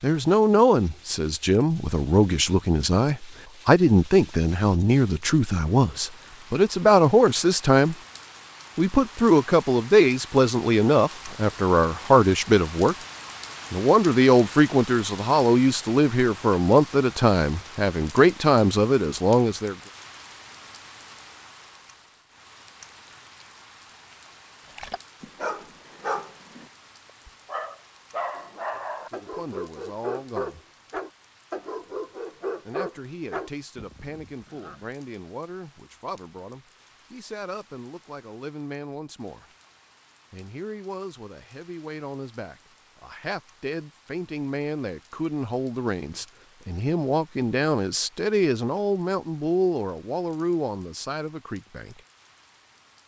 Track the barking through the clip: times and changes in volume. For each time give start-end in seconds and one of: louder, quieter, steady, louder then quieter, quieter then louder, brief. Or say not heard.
24.6-34.8 steady.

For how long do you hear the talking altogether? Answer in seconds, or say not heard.
38 s.